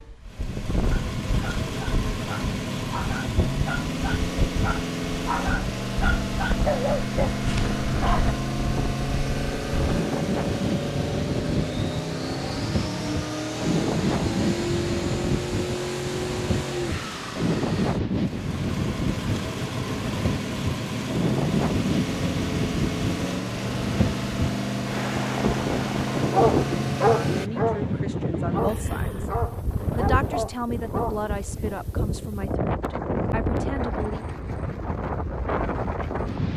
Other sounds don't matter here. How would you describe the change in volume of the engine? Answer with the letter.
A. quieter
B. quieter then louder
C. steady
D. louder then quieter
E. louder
C.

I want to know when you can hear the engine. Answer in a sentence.
The engine can be heard from 0.0 to 27.5 s.